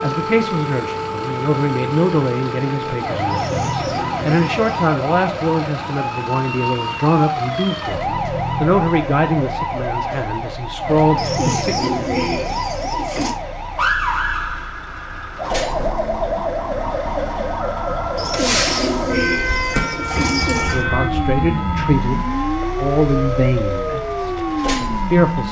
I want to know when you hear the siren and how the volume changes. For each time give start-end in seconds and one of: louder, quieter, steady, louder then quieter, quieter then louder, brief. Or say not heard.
0.0-25.4 steady.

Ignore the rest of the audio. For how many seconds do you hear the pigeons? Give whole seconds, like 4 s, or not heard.
6 s.